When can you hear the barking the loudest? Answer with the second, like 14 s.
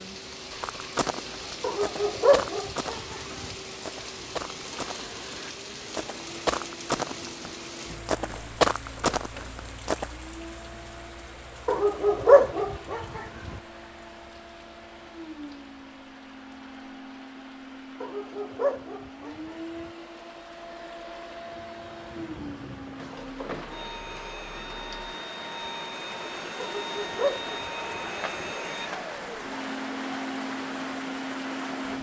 12 s.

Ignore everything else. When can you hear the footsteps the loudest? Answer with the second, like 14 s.
9 s.